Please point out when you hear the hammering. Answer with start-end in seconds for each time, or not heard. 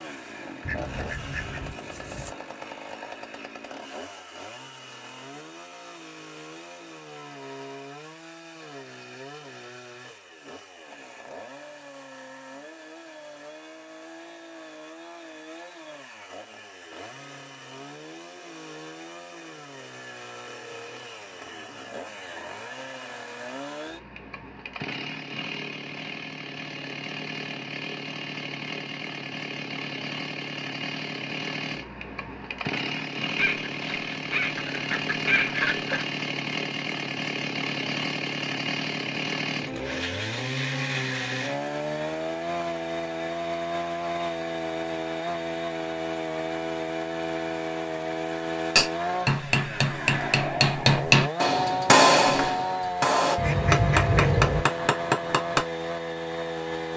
48.8-55.6.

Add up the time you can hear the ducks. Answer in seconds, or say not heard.
6 s.